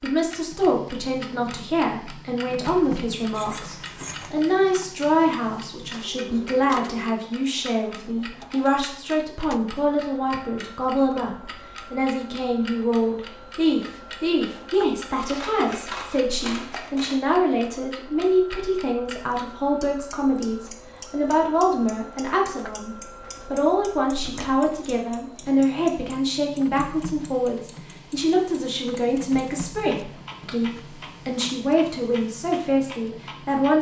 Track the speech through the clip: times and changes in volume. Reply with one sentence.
The speech can be heard from 0.0 to 33.7 s, at a steady volume.